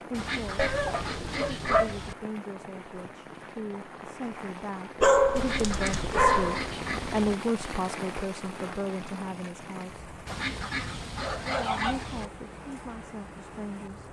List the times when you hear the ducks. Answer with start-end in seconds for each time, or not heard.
0.1-2.1, 5.3-7.3, 10.2-12.3.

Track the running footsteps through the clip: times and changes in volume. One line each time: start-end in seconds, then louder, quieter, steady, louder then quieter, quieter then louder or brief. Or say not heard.
not heard.